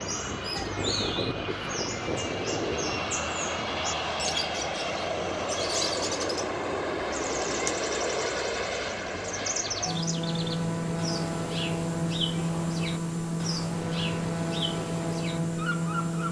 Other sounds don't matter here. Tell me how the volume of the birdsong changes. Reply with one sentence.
The volume of the birdsong stays about the same.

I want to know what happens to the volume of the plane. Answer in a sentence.
The loudness of the plane stays about the same.